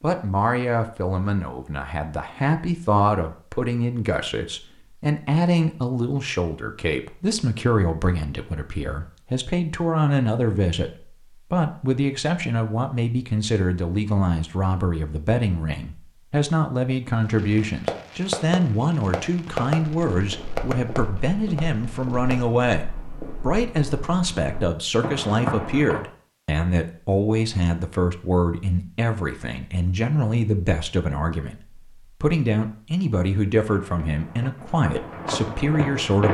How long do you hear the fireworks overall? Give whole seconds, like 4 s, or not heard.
5 s.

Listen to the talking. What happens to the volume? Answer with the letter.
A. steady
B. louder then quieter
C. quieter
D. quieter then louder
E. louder
A.